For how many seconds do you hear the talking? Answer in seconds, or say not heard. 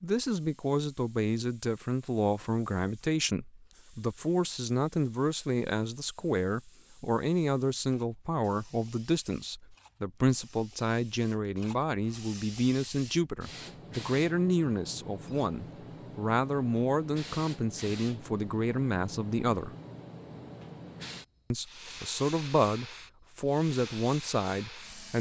23 s.